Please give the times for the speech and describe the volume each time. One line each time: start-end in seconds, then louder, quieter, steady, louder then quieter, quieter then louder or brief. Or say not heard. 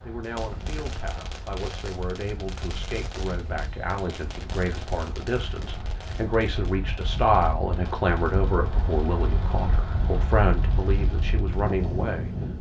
0.0-12.3 louder.